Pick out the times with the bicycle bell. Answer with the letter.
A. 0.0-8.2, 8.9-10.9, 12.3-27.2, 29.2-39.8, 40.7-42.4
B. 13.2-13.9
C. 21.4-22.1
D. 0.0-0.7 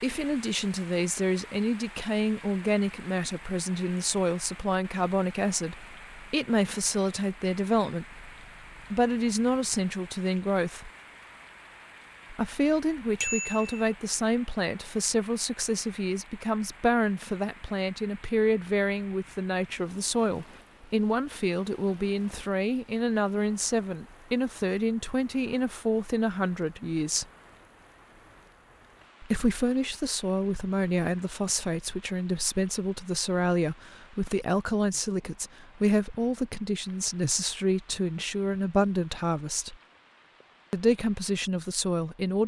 B.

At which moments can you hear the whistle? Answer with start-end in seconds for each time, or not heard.
not heard.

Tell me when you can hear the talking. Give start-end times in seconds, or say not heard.
0.0-8.2, 8.9-10.9, 12.3-27.2, 29.2-39.8, 40.7-42.4.